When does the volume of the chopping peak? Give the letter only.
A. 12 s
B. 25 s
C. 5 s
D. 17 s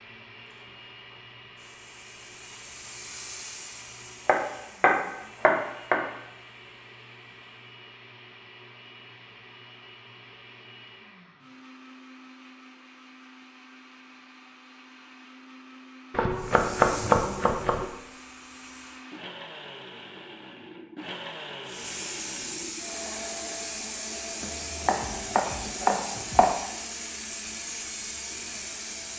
D.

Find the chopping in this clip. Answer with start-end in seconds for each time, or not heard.
4.2-6.0, 16.1-17.9, 24.4-26.6.